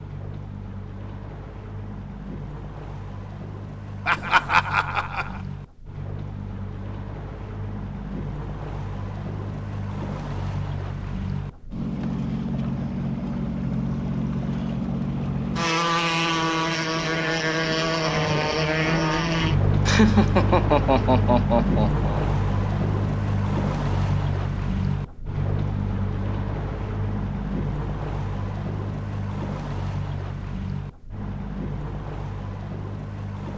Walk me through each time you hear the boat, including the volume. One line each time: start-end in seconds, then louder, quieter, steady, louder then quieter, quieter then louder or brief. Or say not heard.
0.0-33.5 louder then quieter.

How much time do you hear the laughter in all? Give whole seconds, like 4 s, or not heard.
4 s.